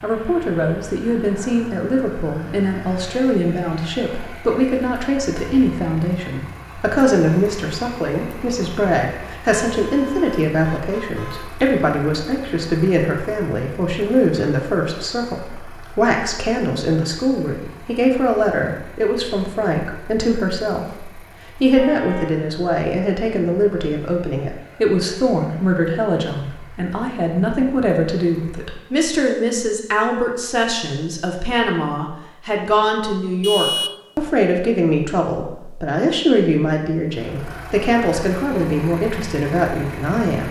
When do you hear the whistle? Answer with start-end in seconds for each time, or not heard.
not heard.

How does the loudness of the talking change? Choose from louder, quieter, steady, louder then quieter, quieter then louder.
steady.